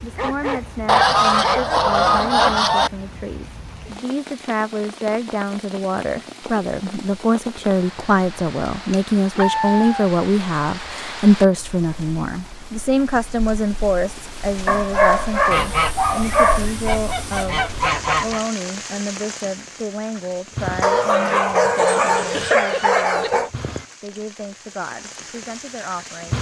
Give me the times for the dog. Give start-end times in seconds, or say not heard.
0.1-1.6, 9.3-10.1, 14.7-16.6, 20.8-23.5.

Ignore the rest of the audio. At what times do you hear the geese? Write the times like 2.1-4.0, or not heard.
0.8-2.9, 15.5-18.4.